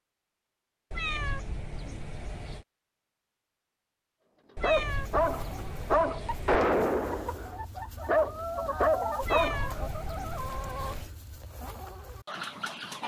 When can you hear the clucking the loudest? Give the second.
9 s.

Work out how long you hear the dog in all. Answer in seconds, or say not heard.
5 s.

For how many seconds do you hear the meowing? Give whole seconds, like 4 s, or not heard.
6 s.